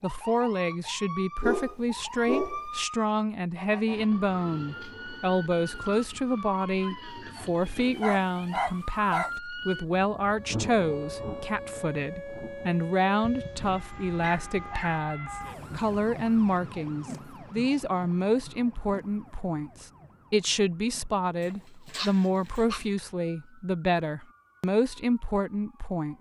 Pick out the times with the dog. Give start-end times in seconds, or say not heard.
1.4-2.9, 7.3-9.3, 13.2-15.0, 21.4-22.9.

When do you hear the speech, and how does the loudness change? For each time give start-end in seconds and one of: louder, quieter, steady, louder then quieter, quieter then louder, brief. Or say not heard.
0.0-26.1 steady.